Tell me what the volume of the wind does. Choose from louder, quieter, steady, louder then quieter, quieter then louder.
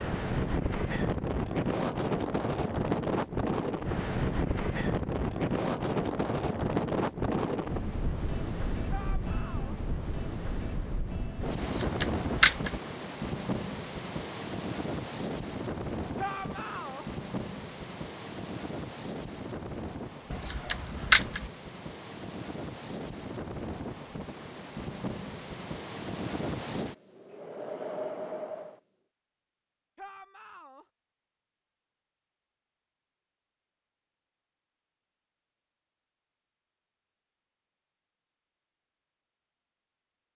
quieter.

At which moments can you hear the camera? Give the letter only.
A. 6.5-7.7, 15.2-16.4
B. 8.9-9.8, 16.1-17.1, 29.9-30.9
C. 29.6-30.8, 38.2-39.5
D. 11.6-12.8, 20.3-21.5
D.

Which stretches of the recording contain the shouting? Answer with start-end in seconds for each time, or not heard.
8.9-9.8, 16.1-17.1, 29.9-30.9.